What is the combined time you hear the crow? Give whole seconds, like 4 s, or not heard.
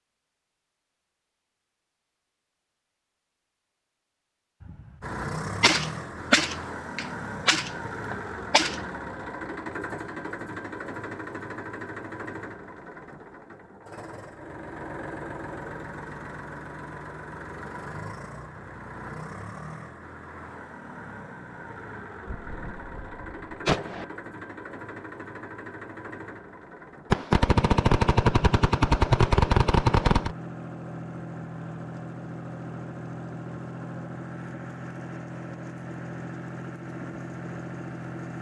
not heard.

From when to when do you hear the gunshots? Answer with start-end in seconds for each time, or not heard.
5.6-8.8, 22.2-24.1, 27.1-30.4.